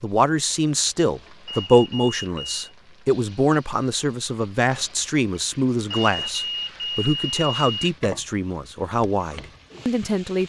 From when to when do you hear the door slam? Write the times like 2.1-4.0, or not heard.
not heard.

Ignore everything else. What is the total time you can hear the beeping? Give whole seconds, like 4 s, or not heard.
3 s.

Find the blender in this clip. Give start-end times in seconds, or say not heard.
not heard.